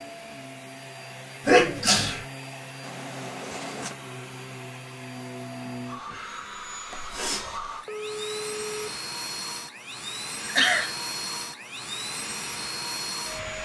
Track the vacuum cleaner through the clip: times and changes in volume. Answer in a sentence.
The vacuum cleaner can be heard from 0.0 to 13.6 s, getting louder.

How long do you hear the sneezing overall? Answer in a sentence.
You can hear the sneezing for 3 seconds altogether.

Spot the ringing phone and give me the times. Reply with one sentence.
The ringing phone can be heard from 2.8 to 4.0 s and from 7.8 to 9.0 s.